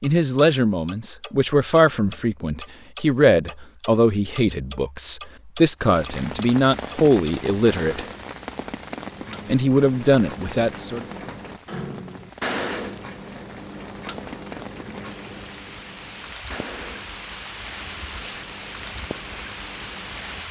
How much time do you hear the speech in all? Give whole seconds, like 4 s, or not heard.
10 s.